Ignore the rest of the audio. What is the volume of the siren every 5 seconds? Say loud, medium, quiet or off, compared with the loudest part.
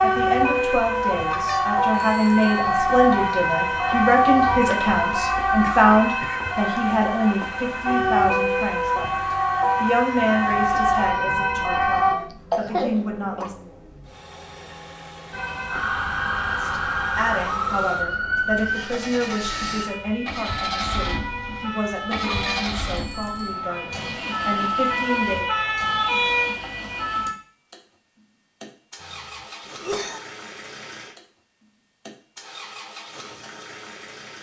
loud, loud, loud, medium, medium, loud, off.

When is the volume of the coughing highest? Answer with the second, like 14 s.
13 s.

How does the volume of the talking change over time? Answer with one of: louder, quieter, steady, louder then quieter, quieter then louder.
quieter.